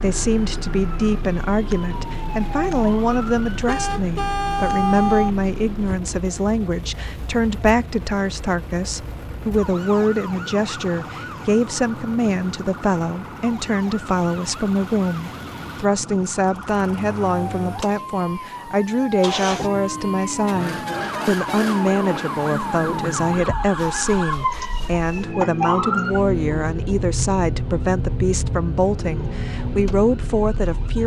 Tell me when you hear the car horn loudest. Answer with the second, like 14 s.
5 s.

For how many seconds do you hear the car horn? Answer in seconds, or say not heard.
2 s.